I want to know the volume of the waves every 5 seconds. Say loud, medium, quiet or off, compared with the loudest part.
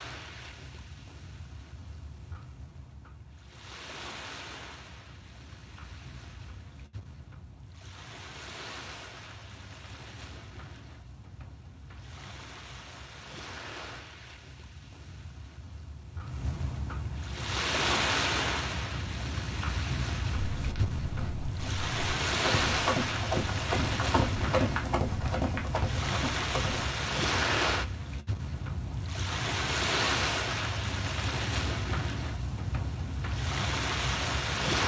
quiet, quiet, quiet, loud, loud, loud, loud.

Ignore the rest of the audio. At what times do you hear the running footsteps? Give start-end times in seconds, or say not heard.
20.5-26.9.